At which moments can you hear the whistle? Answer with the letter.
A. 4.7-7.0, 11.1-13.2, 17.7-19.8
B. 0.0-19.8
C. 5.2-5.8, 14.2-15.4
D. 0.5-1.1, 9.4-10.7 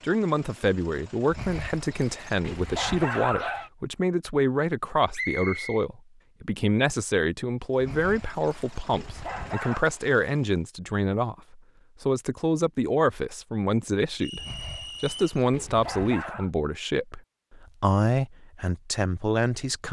C.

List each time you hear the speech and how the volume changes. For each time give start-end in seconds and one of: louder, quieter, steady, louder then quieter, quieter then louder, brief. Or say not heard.
0.0-19.8 steady.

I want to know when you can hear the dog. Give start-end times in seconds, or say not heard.
1.3-3.7, 7.8-9.8, 14.3-16.5.